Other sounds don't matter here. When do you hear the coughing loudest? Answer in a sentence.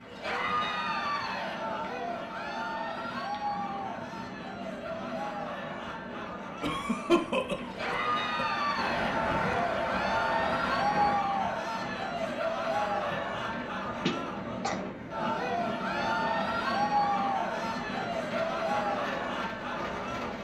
The loudest moment of the coughing is at 7 seconds.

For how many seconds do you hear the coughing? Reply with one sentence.
You can hear the coughing for 3 seconds altogether.